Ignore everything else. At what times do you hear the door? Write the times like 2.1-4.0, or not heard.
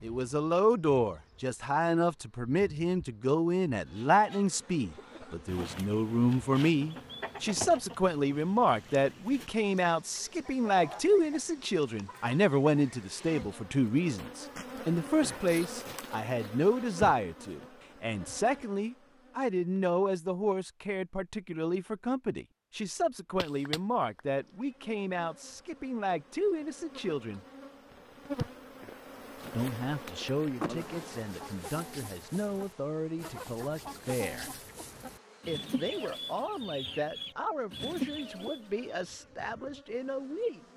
30.6-31.4.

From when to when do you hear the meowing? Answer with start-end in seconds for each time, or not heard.
23.4-24.2.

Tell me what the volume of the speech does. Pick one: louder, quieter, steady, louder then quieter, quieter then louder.
quieter.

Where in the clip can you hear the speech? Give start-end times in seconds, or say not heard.
0.0-27.4, 29.5-34.6, 35.5-40.6.